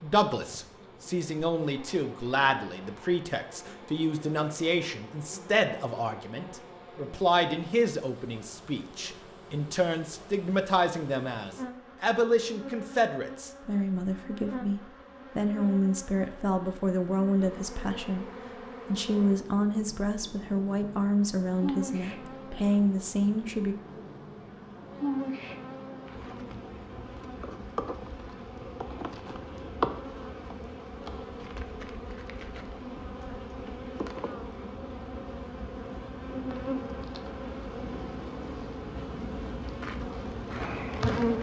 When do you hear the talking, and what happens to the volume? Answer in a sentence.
The talking can be heard from 0.0 to 23.8 s, at a steady volume.